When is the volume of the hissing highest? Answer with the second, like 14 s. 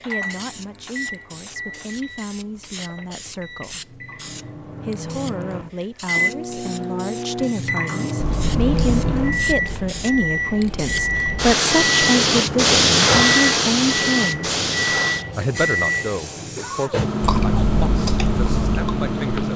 13 s.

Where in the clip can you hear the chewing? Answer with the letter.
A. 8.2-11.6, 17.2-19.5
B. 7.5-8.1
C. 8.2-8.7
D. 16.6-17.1
A.